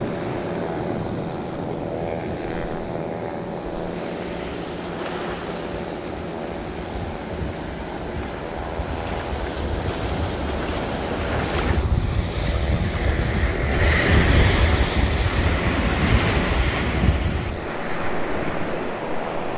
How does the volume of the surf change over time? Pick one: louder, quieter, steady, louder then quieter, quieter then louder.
louder.